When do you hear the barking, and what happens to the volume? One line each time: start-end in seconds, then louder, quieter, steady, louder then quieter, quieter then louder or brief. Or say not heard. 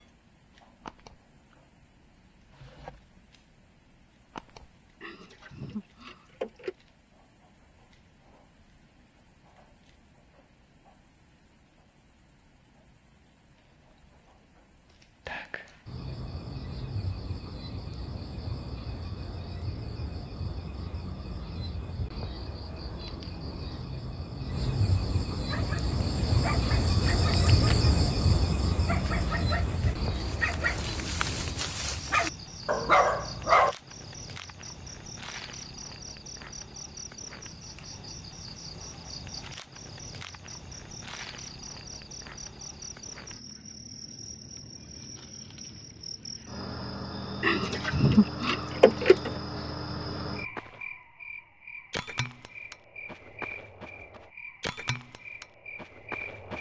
25.4-33.8 louder.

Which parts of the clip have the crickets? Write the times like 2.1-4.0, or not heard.
0.0-56.5.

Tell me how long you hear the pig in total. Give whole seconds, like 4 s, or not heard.
4 s.